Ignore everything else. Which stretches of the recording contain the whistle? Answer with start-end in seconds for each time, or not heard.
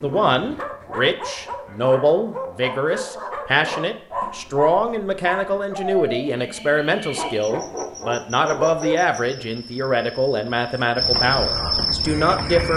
not heard.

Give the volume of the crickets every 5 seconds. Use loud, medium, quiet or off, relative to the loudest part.
off, quiet, loud.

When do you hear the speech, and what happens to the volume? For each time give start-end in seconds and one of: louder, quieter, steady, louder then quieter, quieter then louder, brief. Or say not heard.
0.0-12.7 steady.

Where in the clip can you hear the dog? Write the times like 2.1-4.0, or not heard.
0.0-9.4.